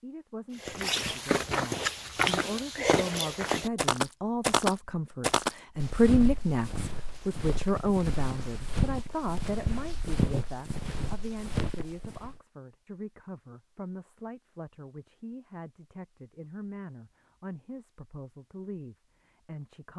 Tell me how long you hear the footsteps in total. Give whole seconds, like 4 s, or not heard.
12 s.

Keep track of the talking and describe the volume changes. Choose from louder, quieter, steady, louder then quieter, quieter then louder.
louder then quieter.